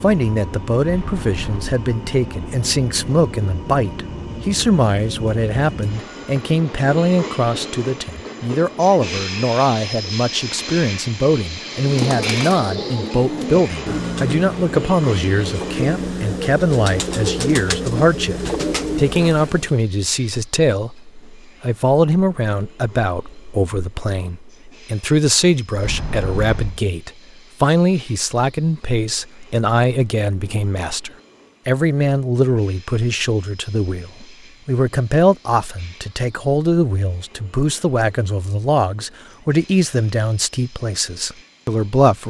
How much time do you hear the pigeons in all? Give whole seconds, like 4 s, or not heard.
8 s.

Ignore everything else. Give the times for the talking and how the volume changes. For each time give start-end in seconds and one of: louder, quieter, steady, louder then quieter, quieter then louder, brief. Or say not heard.
0.0-42.2 steady.